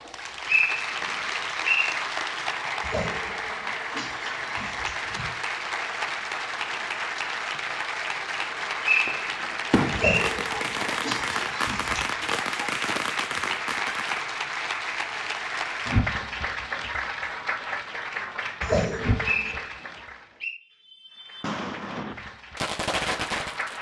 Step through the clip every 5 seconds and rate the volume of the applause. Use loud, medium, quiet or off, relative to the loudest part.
loud, loud, loud, loud, medium.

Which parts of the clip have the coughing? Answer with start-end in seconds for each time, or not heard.
2.8-5.3, 9.9-12.1, 18.6-19.6.